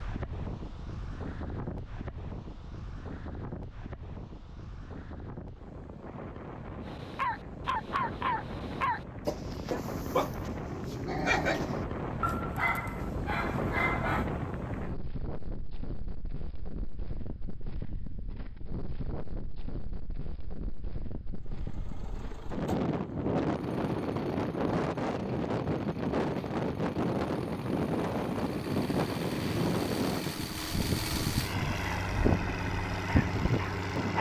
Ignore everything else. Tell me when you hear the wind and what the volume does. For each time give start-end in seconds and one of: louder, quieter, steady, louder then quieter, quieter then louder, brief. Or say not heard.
0.0-34.1 louder.